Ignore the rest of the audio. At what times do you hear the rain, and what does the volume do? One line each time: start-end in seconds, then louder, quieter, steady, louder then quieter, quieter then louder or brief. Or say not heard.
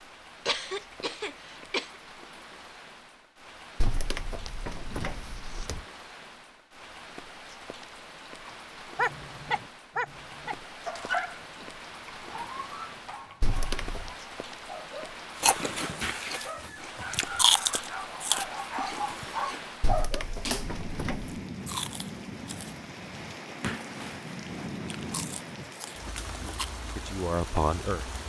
0.0-28.2 louder.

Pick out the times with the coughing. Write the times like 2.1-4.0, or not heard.
0.5-1.9.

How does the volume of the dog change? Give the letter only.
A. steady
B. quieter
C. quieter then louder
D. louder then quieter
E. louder
C.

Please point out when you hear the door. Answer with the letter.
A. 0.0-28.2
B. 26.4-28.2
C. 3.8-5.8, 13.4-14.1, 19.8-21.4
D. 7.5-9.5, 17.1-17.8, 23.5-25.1
C.